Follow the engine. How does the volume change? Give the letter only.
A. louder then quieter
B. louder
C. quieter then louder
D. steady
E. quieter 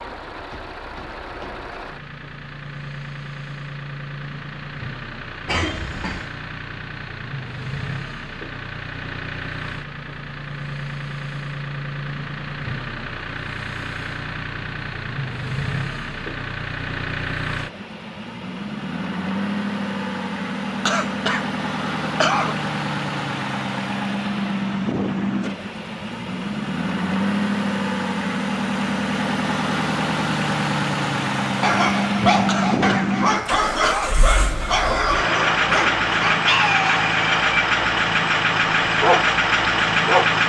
B.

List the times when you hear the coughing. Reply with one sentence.
The coughing can be heard from 5.5 to 6.2 s, from 20.9 to 22.6 s and from 32.5 to 34.2 s.